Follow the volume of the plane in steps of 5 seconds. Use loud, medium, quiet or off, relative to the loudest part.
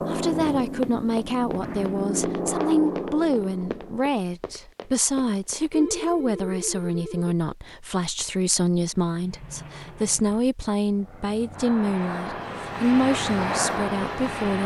loud, off, loud.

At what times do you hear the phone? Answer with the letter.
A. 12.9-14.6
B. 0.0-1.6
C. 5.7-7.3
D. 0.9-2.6
C.